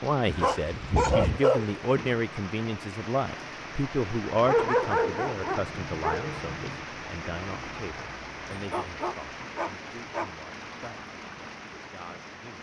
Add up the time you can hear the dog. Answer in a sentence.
You can hear the dog for 5 seconds altogether.